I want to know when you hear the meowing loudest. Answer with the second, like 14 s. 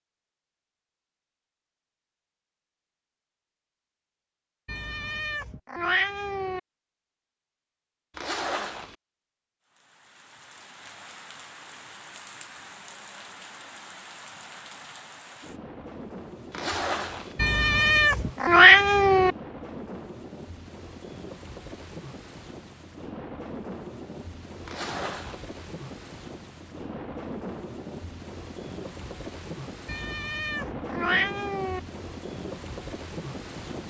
19 s.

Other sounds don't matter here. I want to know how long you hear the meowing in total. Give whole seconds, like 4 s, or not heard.
6 s.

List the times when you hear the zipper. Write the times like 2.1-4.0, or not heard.
8.2-8.9, 16.5-17.4, 24.6-25.4.